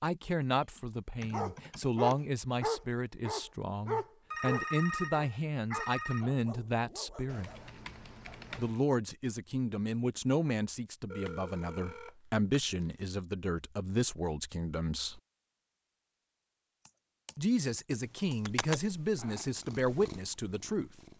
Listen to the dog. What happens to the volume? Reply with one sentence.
The volume of the dog goes down.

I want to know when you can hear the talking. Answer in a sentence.
You can hear the talking from 0.0 to 7.5 s, from 8.6 to 15.2 s and from 17.4 to 20.9 s.